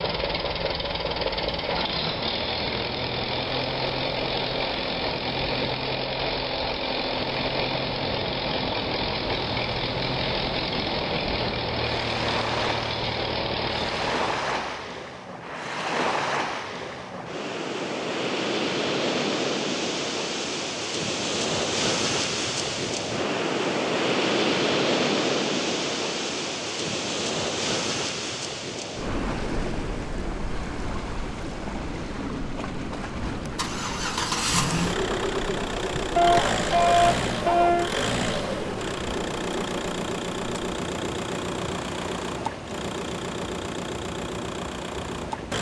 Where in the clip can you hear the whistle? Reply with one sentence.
The whistle can't be heard in this clip.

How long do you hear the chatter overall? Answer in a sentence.
You can't hear the chatter here.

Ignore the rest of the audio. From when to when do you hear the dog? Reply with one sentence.
You can hear the dog from 36.1 to 37.9 s.